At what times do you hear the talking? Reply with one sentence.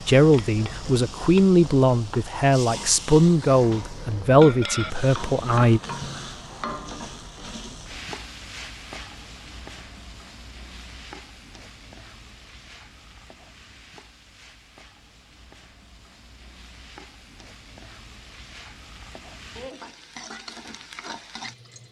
The talking can be heard from 0.1 to 5.8 s.